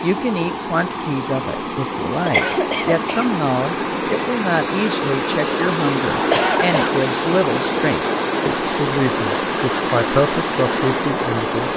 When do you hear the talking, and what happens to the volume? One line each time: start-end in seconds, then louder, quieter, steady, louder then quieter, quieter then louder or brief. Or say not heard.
0.0-11.7 steady.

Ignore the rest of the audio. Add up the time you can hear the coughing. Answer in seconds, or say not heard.
2 s.